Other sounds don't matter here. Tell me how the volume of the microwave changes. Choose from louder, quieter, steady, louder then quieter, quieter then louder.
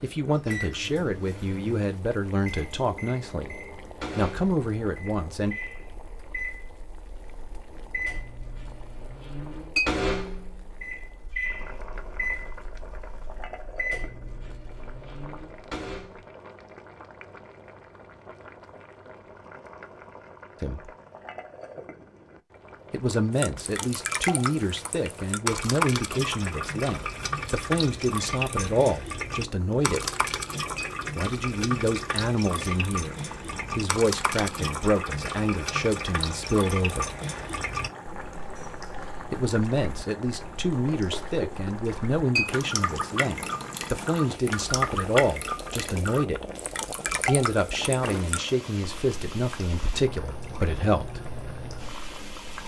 louder then quieter.